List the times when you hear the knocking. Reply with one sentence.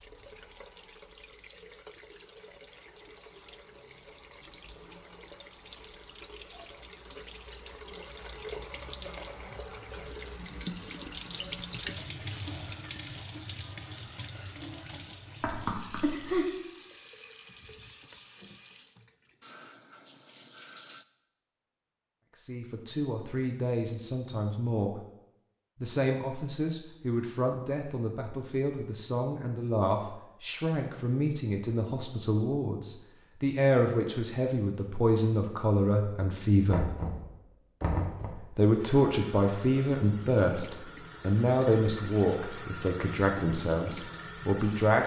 You can hear the knocking from 15.4 to 16.4 s and from 36.7 to 38.3 s.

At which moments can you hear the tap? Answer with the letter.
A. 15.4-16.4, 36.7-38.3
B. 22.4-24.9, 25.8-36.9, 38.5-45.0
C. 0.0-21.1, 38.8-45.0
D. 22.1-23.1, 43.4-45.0
C.